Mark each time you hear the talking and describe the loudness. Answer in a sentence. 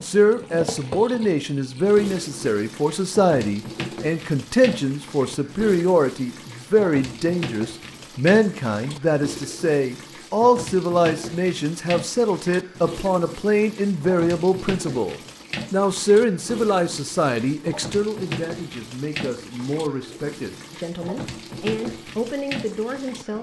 The talking can be heard from 0.0 to 23.3 s, getting quieter.